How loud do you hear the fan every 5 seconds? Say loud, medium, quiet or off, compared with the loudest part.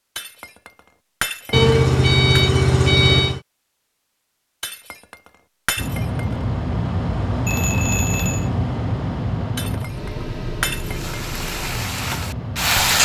off, loud, medium.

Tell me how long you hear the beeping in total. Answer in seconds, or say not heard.
3 s.